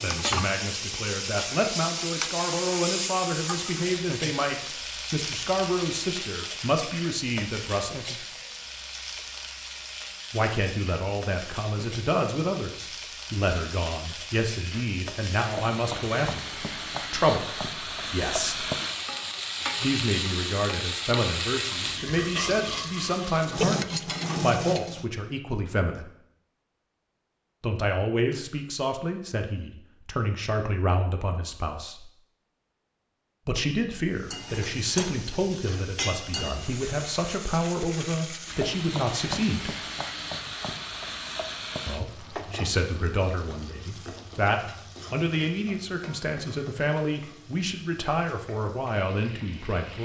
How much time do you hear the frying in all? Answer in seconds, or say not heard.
41 s.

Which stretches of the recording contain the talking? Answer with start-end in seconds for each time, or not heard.
0.0-8.2, 10.3-18.6, 19.8-26.1, 27.6-32.1, 33.5-39.8, 41.9-50.0.